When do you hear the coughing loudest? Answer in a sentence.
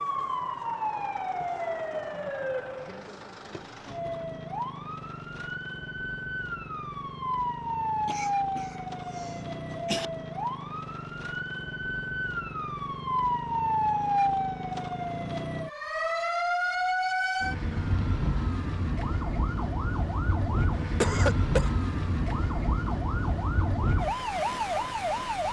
The volume of the coughing peaks at 21 seconds.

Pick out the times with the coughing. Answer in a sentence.
You can hear the coughing from 8.1 to 10.1 s and from 21.0 to 21.7 s.